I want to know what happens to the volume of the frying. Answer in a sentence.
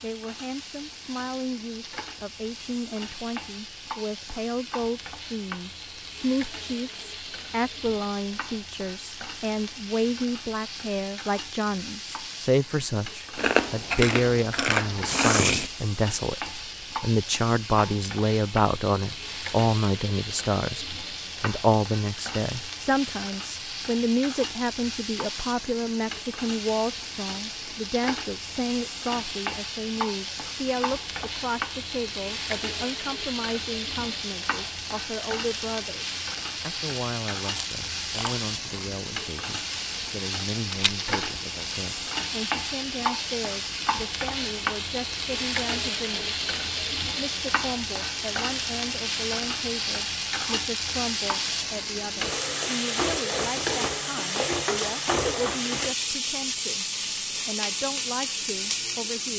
The volume of the frying goes up.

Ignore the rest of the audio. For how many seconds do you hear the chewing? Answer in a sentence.
The chewing can be heard for 4 seconds in total.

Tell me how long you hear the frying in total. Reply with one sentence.
The frying can be heard for 59 seconds in total.